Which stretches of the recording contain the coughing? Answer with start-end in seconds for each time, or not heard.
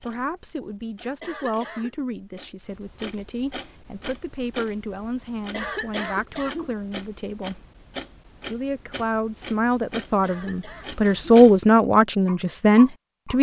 1.2-1.9, 5.5-6.8, 10.2-11.3.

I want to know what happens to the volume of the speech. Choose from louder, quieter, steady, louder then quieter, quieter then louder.
louder.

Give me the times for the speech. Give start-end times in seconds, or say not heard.
0.0-7.6, 8.4-13.3.